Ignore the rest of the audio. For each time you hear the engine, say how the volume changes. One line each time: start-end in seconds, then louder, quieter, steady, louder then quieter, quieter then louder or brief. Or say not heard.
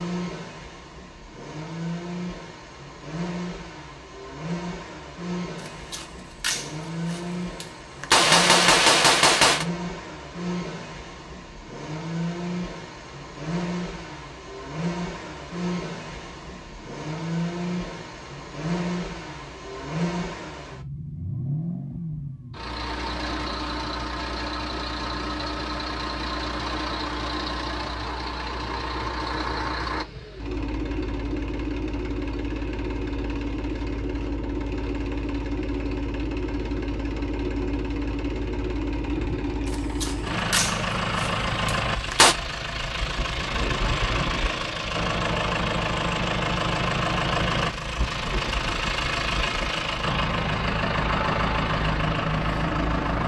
0.0-53.2 louder.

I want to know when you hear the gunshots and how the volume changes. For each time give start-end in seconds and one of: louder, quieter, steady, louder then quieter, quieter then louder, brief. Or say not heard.
5.7-9.7 quieter then louder
39.7-42.4 brief.